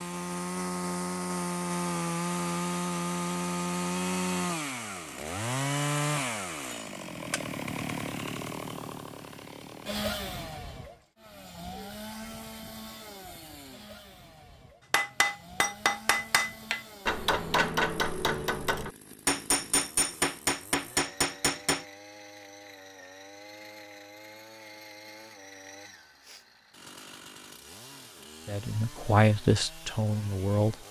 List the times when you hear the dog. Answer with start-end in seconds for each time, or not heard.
not heard.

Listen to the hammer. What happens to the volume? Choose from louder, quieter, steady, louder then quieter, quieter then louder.
steady.